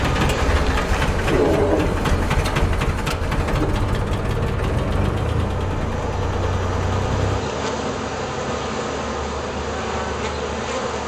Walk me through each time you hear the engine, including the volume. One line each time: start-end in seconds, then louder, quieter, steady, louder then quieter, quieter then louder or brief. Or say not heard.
0.0-7.5 quieter.